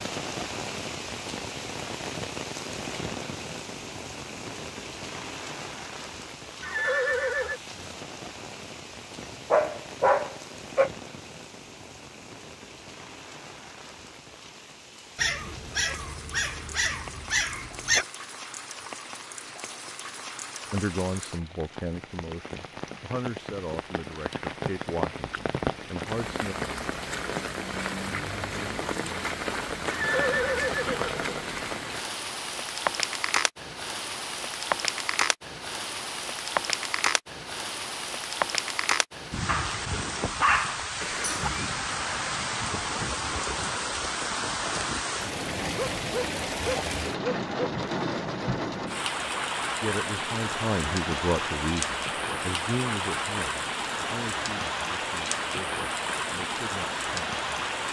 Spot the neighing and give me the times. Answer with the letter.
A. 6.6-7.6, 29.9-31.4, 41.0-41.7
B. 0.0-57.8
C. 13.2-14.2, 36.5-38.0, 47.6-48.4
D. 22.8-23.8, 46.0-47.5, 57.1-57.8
A.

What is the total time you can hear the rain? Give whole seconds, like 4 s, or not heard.
58 s.